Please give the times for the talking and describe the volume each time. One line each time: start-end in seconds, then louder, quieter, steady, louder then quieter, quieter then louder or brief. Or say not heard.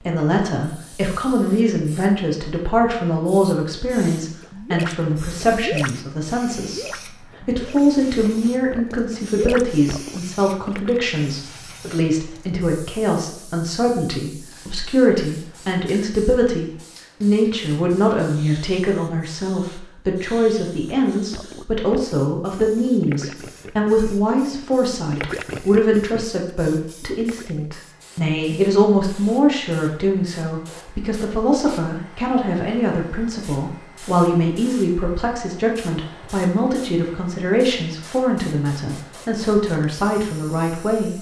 0.1-41.1 steady.